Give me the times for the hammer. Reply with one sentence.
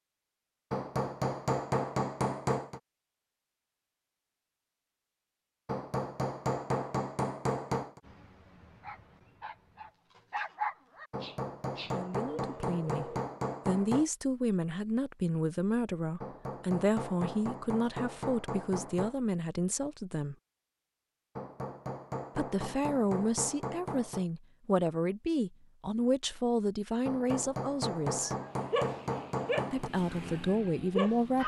The hammer can be heard from 0.7 to 2.8 s, from 5.7 to 8.0 s, from 11.1 to 14.1 s, from 16.2 to 19.1 s, from 21.4 to 24.2 s and from 27.1 to 29.9 s.